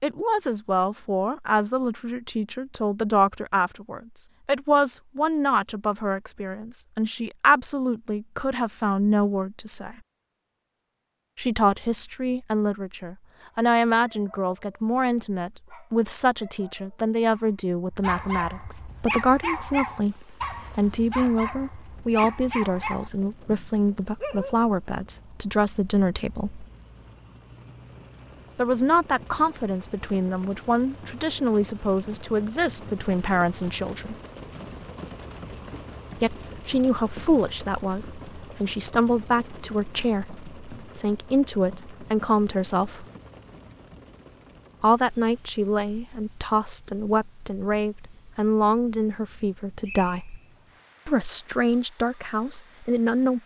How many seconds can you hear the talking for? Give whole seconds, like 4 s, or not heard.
46 s.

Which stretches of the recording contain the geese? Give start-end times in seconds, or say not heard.
not heard.